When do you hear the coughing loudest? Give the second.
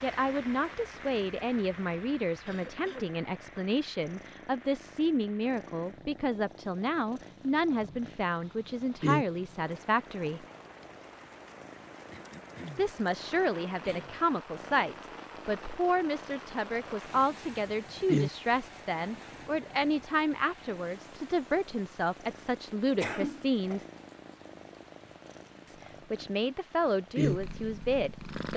23 s.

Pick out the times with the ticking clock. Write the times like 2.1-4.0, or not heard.
not heard.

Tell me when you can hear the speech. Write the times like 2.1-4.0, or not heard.
0.0-10.4, 12.8-23.9, 25.6-28.5.